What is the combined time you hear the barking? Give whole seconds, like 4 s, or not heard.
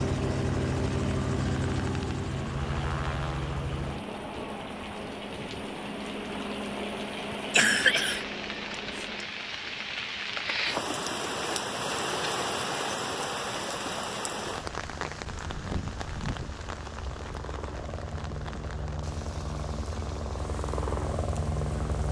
not heard.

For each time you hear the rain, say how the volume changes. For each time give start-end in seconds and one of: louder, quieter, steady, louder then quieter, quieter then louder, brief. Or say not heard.
0.2-22.0 louder then quieter.